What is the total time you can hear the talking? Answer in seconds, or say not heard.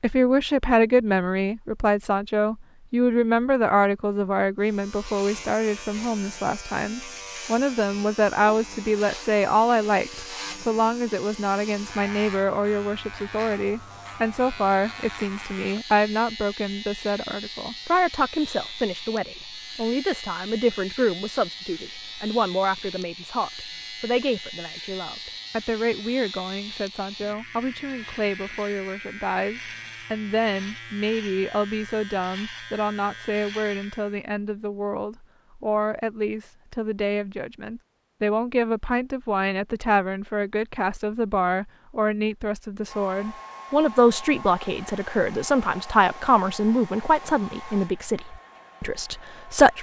50 s.